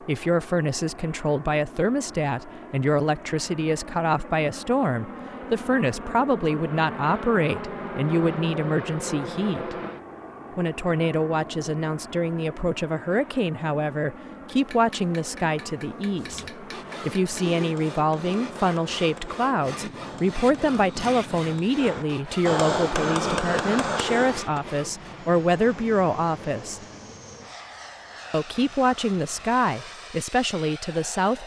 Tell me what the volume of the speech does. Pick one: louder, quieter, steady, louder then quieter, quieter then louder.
steady.